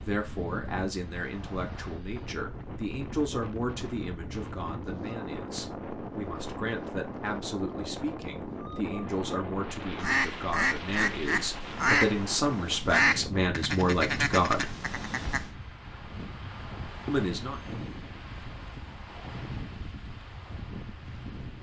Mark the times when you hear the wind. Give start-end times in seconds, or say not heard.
0.0-21.5.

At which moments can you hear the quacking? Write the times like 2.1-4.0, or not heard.
10.0-15.5.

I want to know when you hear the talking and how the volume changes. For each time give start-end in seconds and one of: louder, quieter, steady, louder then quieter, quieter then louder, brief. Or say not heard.
0.0-14.8 louder
17.1-17.6 brief.